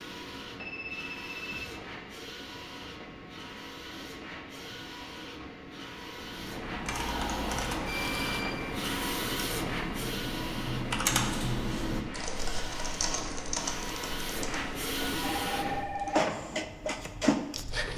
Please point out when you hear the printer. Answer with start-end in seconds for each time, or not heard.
0.0-17.9.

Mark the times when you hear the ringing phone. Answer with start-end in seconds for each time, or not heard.
0.6-1.6, 7.8-8.8, 15.1-16.4.